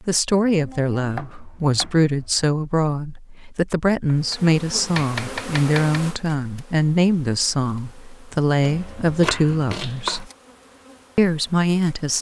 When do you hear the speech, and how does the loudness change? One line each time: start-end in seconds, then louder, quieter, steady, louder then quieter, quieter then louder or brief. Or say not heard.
0.1-10.2 steady
11.2-12.1 brief.